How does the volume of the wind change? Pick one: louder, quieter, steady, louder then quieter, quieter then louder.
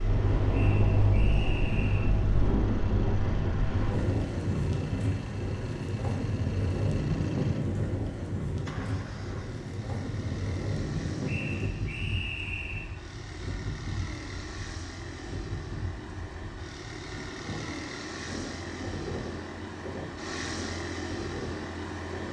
quieter.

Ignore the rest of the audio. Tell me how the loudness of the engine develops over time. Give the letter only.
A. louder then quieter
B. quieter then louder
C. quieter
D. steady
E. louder
E.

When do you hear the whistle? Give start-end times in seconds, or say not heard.
0.5-2.1, 11.2-12.9.